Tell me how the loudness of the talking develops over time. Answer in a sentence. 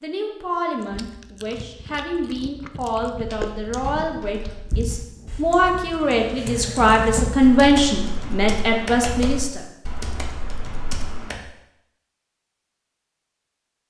The loudness of the talking goes up.